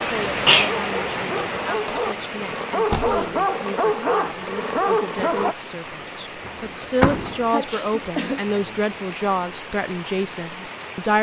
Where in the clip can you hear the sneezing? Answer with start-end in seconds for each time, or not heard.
0.5-1.6, 7.5-8.6.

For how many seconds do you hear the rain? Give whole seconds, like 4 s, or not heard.
11 s.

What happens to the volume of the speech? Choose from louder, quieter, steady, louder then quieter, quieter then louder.
louder.